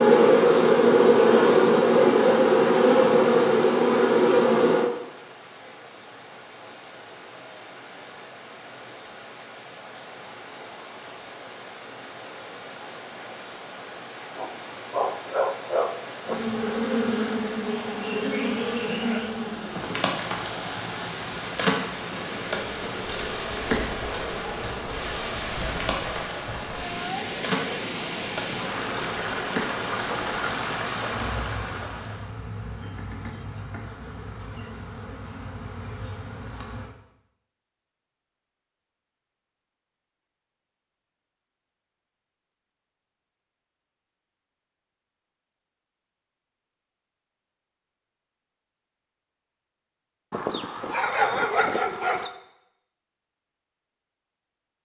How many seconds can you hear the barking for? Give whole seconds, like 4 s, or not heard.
4 s.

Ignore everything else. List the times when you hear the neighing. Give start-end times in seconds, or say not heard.
not heard.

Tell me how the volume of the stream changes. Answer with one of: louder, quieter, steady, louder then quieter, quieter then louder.
louder.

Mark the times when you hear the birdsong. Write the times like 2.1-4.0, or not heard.
not heard.